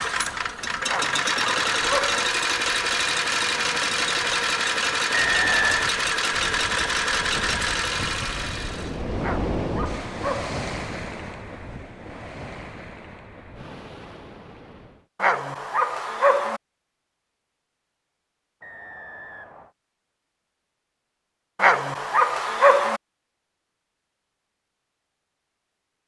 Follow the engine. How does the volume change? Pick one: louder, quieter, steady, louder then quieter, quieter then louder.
steady.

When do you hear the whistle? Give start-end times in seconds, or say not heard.
5.1-6.0, 18.6-19.7.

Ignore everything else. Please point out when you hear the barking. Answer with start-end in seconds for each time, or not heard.
0.8-2.2, 9.2-10.6, 15.2-16.6, 21.6-23.0.